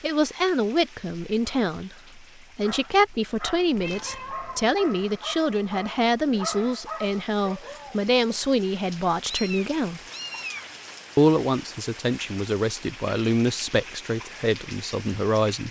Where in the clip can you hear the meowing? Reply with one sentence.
The meowing can be heard from 3.8 to 4.8 s and from 9.2 to 10.7 s.